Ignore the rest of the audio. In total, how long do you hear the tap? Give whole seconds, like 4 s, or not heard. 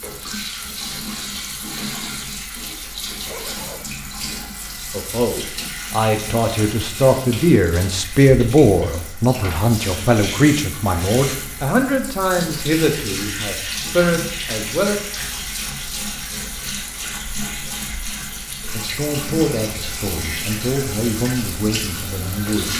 23 s.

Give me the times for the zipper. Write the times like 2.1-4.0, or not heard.
3.2-3.9.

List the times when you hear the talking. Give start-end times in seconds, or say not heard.
4.9-14.9, 18.7-22.7.